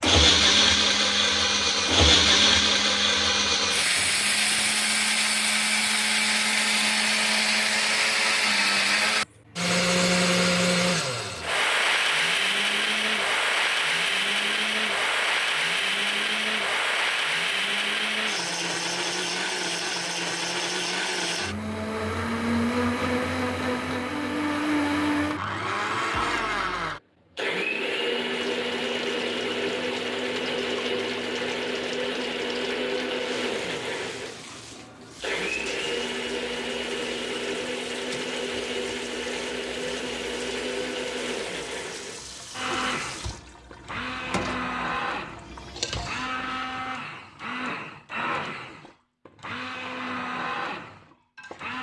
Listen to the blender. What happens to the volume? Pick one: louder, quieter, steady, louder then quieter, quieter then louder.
quieter.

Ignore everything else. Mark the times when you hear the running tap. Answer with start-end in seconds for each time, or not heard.
28.3-46.9.